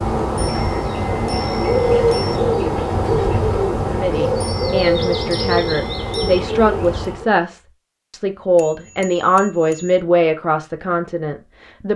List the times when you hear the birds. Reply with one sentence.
The birds can be heard from 0.0 to 7.3 s.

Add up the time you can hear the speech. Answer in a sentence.
The speech can be heard for 8 seconds in total.